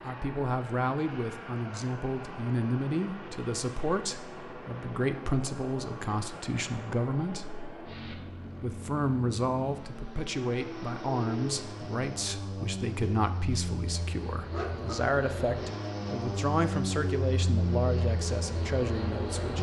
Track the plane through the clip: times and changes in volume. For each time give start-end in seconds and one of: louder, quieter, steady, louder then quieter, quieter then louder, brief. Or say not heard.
0.0-19.5 louder.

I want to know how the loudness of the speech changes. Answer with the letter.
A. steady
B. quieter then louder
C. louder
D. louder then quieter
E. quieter
A.